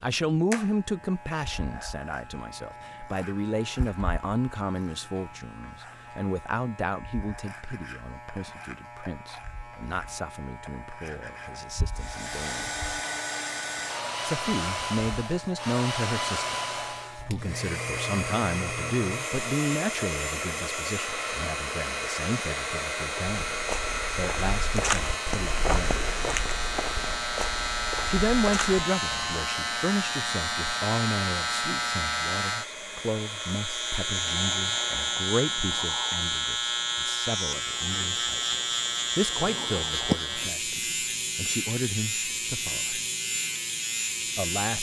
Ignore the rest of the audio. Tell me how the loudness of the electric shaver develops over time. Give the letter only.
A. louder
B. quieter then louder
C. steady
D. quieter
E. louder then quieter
A.